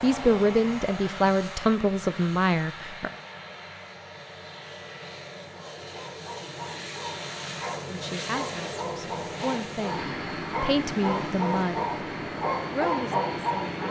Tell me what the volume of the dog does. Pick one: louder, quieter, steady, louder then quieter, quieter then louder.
louder.